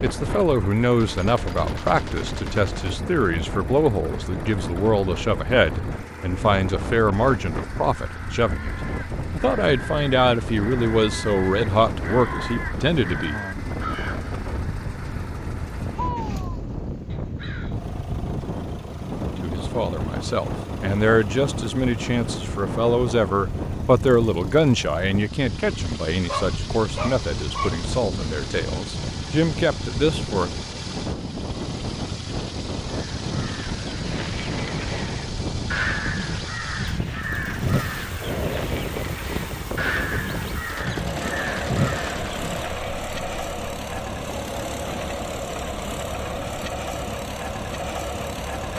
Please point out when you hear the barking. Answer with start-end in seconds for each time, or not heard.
26.1-27.9.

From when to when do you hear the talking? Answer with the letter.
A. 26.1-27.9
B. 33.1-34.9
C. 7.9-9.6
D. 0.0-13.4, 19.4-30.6
D.